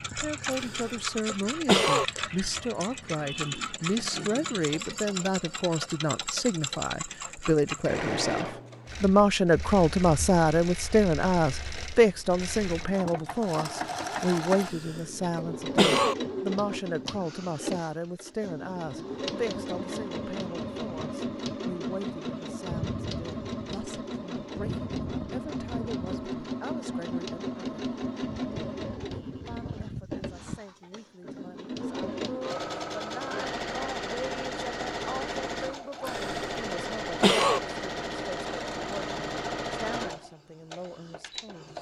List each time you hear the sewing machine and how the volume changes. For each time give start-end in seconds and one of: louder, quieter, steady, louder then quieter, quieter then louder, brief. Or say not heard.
0.0-41.7 steady.